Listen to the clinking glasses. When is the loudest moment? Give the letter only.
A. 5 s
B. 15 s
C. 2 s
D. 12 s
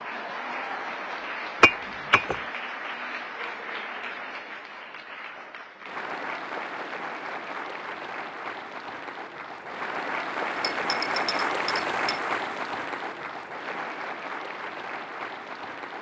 C.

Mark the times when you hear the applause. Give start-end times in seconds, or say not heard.
0.0-15.9.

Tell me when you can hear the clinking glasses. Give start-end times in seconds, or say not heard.
1.6-2.4, 10.6-12.2.